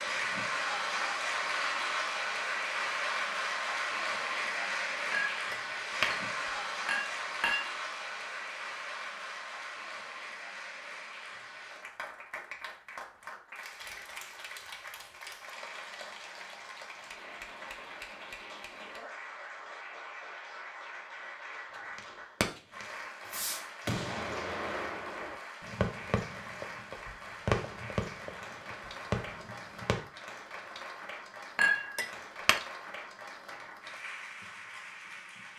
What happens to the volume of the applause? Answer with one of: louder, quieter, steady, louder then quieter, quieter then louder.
quieter.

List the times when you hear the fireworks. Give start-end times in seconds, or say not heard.
21.9-30.0.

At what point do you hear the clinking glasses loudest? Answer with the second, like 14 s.
32 s.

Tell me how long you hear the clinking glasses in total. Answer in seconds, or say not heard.
4 s.